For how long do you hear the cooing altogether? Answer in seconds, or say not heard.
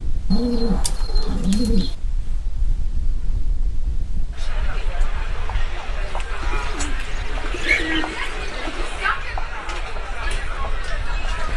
4 s.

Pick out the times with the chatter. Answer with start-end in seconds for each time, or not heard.
4.3-11.5.